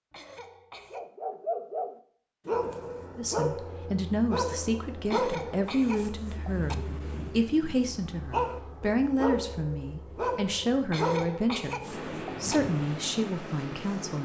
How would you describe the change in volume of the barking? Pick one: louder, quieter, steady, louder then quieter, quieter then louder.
quieter then louder.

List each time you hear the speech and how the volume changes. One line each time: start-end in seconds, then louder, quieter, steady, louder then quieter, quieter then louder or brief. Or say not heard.
3.1-14.2 steady.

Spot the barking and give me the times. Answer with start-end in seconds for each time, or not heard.
0.7-12.8.